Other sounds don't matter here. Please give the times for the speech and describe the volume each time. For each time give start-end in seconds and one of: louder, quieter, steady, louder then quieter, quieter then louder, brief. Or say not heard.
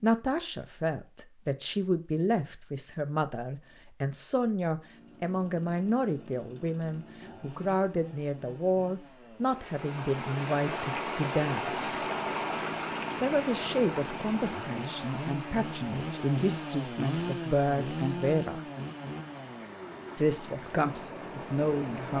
0.0-12.0 steady
13.2-18.6 quieter then louder
20.1-22.1 brief.